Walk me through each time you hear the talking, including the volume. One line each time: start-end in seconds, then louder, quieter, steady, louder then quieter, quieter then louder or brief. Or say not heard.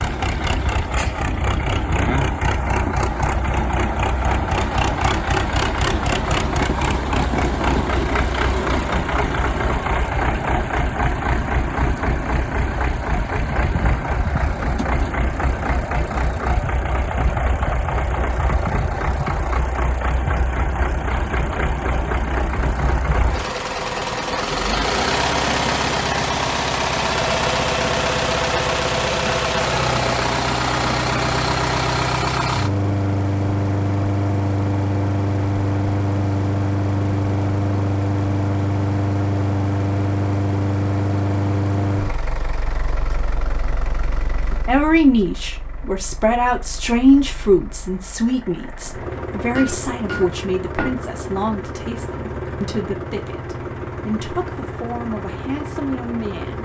44.5-56.6 quieter.